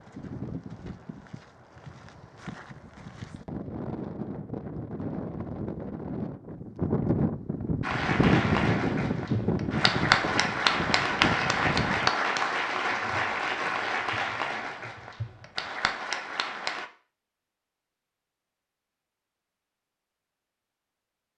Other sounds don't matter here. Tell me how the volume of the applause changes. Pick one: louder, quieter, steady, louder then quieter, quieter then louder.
louder then quieter.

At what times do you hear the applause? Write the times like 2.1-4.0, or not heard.
7.8-16.9.